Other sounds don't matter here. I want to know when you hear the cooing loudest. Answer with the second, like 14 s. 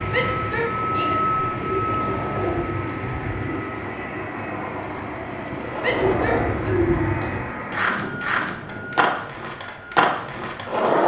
7 s.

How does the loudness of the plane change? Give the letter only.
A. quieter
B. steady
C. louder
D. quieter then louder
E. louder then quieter
A.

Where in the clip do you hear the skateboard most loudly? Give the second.
10 s.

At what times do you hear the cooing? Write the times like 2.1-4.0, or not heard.
1.6-3.6, 5.8-7.5.